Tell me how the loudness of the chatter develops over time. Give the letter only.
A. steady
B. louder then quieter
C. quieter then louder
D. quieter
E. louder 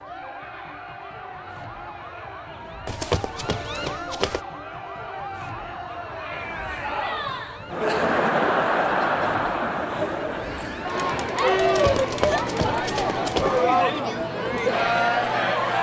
E.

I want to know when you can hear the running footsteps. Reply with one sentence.
The running footsteps can be heard from 2.9 to 4.4 s and from 11.7 to 13.6 s.